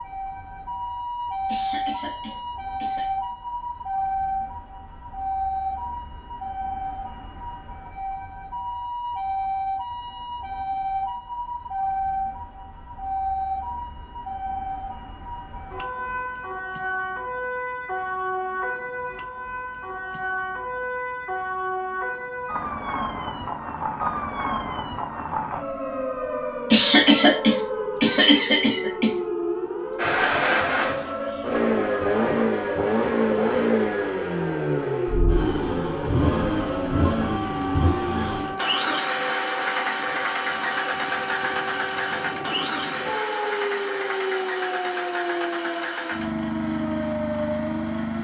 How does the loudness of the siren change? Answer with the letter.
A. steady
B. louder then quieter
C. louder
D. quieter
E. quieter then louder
A.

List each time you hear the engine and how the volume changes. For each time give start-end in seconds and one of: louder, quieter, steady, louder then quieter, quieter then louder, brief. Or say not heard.
29.9-48.1 quieter.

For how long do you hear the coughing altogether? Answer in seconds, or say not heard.
4 s.